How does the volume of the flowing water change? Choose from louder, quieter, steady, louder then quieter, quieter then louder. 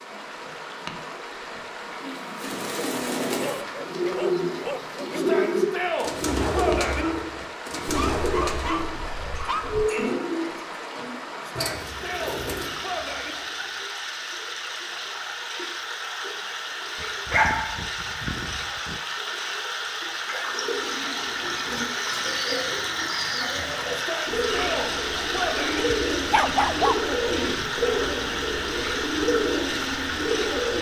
louder.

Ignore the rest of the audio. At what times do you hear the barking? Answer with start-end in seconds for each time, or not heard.
3.4-5.3, 7.8-9.9, 17.0-19.0, 25.9-26.9.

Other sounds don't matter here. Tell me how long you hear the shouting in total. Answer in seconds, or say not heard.
6 s.